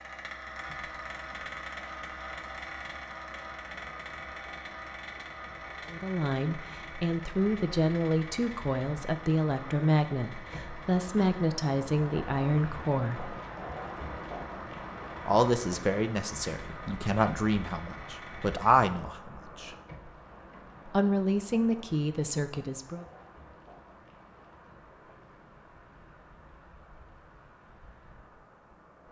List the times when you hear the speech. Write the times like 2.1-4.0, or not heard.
5.9-13.3, 15.2-19.8, 20.9-23.1.